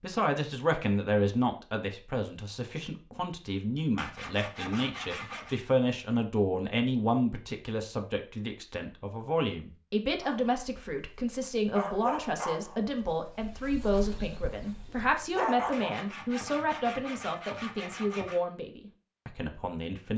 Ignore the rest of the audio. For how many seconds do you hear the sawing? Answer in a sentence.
You can hear the sawing for 4 seconds altogether.